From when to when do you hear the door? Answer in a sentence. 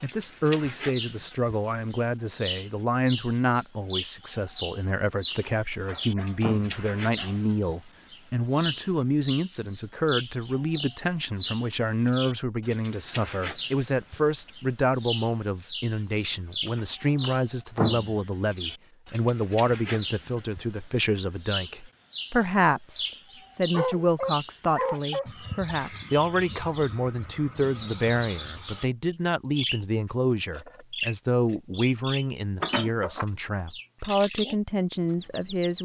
You can hear the door from 5.3 to 6.8 s, from 16.6 to 18.1 s and from 32.6 to 33.2 s.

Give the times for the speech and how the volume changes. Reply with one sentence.
You can hear the speech from 0.0 to 35.8 s, at a steady volume.